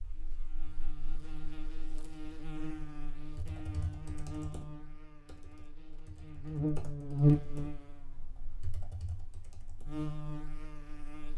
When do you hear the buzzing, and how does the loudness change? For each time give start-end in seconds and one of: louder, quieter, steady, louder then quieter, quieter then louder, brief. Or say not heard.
0.0-11.3 louder then quieter.